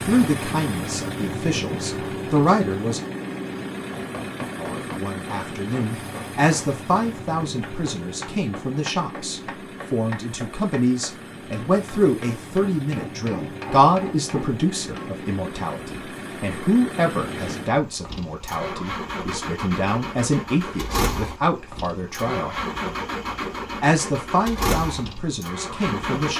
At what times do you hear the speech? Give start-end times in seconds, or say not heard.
0.1-3.0, 4.5-22.6, 23.8-26.3.